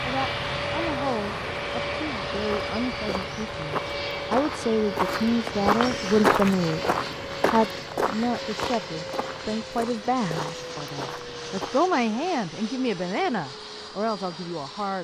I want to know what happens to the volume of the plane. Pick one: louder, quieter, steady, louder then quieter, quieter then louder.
quieter.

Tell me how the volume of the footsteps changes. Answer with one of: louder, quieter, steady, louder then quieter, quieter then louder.
louder then quieter.